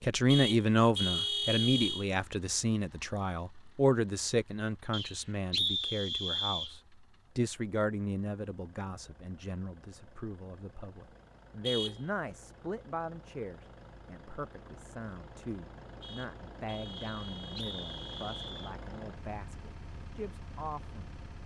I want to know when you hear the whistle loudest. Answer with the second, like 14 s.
6 s.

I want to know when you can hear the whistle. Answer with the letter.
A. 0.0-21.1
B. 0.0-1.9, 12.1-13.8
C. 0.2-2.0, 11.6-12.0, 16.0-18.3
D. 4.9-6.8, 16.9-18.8
D.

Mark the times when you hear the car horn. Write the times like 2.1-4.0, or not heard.
0.2-2.0, 11.6-12.0, 16.0-18.3.